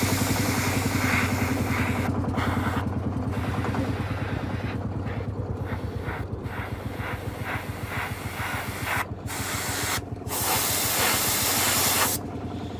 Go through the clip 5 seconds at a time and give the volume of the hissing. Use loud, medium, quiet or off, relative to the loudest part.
medium, medium, loud.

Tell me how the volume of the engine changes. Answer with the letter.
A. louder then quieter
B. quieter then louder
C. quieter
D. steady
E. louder
C.